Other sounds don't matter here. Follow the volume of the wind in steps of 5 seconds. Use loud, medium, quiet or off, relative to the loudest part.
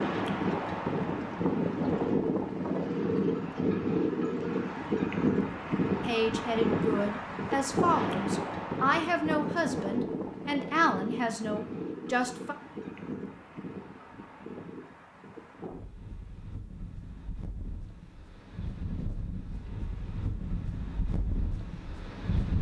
loud, loud, medium, quiet, medium.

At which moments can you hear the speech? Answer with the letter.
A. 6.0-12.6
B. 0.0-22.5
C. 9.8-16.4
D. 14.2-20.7
A.